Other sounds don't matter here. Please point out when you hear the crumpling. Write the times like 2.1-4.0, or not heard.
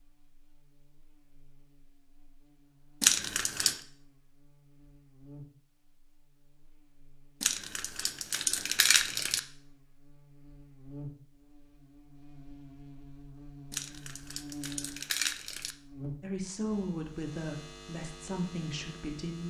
3.0-3.8, 7.4-9.4, 13.7-15.8.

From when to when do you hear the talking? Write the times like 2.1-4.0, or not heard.
16.2-19.4.